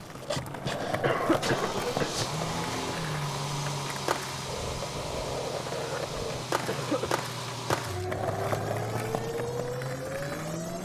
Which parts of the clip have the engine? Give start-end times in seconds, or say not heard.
0.0-10.7.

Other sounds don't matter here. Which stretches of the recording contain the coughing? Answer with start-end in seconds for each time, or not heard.
0.5-2.2, 6.7-7.2.